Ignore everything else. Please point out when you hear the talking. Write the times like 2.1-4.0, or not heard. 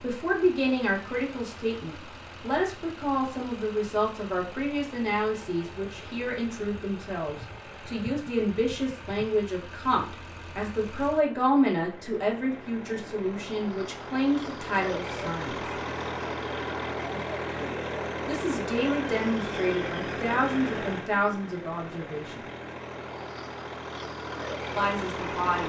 0.0-15.7, 18.2-22.4, 24.8-25.6.